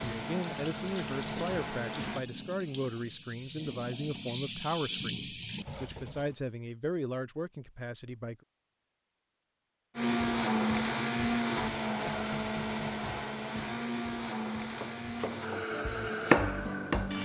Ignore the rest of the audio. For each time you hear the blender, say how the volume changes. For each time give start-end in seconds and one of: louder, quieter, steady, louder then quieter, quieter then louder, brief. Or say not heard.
0.0-2.2 brief
9.9-17.1 quieter.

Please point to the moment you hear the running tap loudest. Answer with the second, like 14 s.
5 s.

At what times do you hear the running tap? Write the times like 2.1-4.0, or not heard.
0.2-6.3.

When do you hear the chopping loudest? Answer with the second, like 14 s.
16 s.